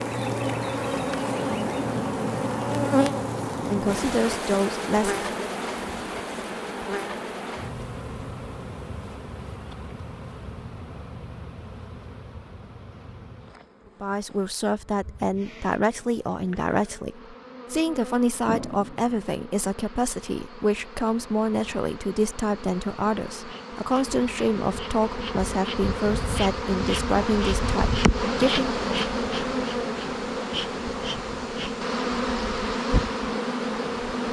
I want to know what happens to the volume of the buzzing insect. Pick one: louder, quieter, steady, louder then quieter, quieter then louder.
quieter then louder.